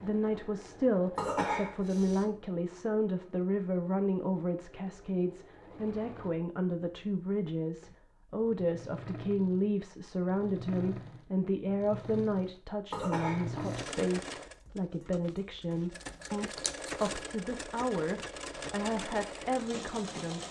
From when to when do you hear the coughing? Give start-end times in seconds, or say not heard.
1.1-2.2, 12.9-13.9.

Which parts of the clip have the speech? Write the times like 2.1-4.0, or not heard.
0.0-20.4.